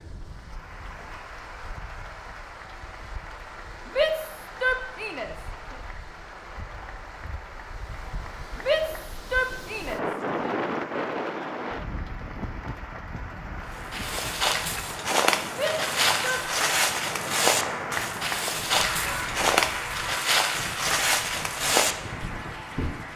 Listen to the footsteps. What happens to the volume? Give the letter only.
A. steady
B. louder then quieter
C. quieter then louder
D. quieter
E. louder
A.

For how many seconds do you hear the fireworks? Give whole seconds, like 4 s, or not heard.
not heard.